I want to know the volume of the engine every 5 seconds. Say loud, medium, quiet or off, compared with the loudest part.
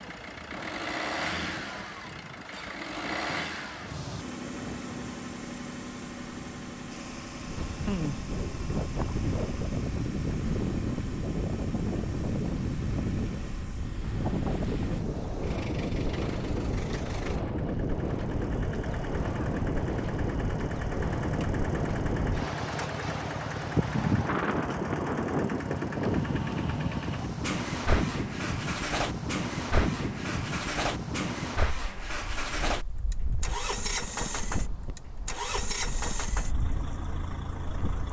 loud, medium, medium, medium, loud, loud, loud, loud.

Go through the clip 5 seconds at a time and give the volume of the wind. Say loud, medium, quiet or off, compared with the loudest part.
quiet, loud, loud, loud, loud, loud, medium, quiet.